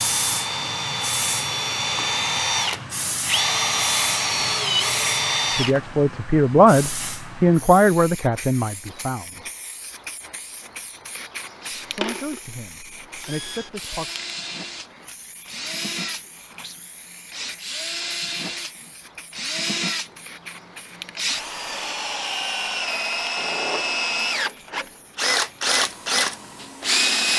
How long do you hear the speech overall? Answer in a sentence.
You can hear the speech for 6 seconds altogether.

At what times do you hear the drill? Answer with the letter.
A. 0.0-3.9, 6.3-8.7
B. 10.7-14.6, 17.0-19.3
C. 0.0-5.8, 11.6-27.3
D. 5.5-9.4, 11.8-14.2
C.